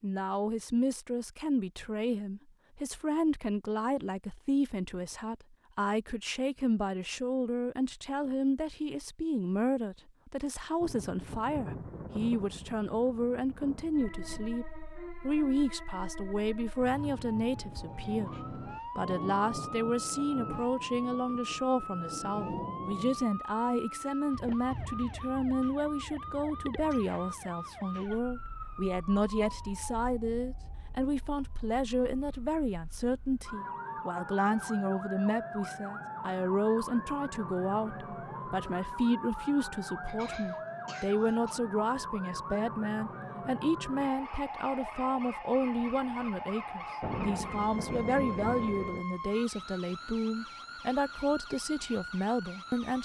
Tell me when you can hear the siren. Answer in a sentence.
The siren can be heard from 13.9 to 53.0 s.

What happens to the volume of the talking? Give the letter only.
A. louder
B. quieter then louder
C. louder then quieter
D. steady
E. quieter
D.